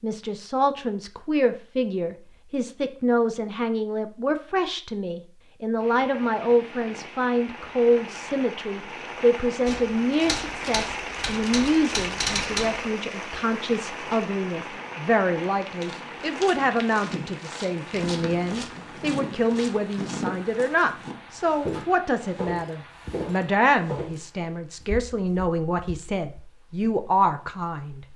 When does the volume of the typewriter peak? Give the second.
12 s.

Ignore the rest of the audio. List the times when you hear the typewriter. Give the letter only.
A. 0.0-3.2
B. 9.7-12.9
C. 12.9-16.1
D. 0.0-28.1
B.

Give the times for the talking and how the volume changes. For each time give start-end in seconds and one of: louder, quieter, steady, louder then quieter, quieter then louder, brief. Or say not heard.
0.0-28.1 steady.